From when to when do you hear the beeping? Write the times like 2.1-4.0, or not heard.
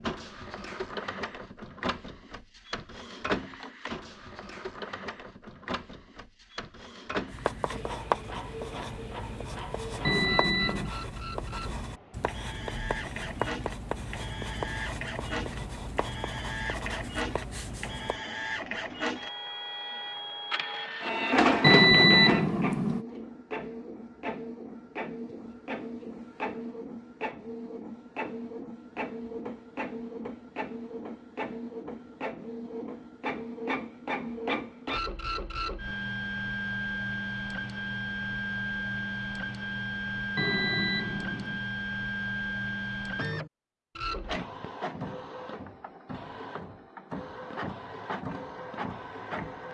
10.1-10.9, 21.6-23.1, 40.4-41.6.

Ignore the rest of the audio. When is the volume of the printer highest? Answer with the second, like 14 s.
22 s.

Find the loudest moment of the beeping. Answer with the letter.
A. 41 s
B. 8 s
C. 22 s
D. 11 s
C.